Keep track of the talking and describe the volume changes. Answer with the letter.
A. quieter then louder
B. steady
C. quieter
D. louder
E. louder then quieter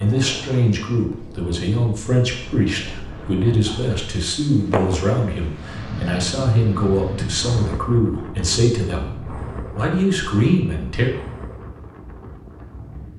B.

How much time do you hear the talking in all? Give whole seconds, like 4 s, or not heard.
11 s.